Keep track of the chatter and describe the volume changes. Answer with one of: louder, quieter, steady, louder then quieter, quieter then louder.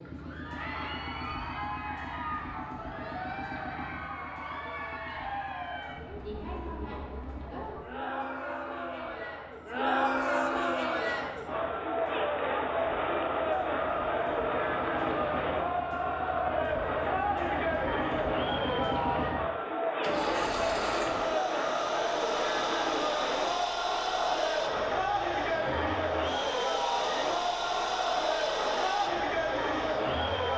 louder.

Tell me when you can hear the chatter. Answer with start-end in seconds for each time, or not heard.
0.1-30.5.